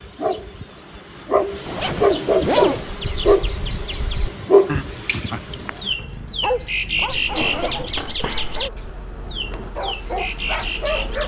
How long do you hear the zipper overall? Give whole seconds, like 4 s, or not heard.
3 s.